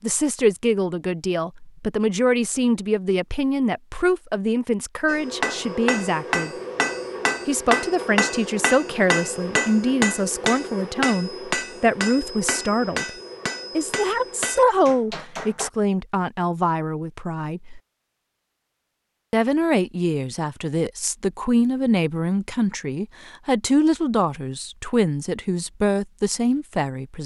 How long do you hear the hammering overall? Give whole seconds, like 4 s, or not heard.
11 s.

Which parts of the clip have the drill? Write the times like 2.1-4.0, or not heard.
not heard.